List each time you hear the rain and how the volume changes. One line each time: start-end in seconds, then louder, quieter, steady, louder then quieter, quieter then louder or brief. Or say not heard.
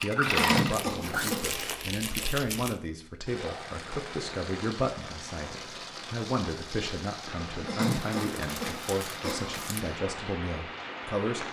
3.2-11.4 steady.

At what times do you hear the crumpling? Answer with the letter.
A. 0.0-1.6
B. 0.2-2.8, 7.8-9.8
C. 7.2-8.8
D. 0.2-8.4
B.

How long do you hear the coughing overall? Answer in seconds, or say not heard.
3 s.